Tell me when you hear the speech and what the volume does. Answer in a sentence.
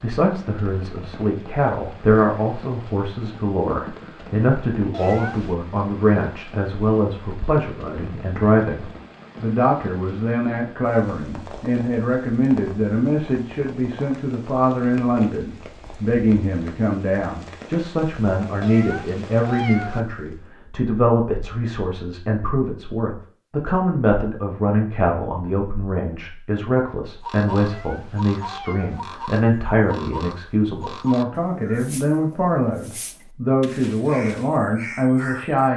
The speech can be heard from 0.0 to 35.7 s, at a steady volume.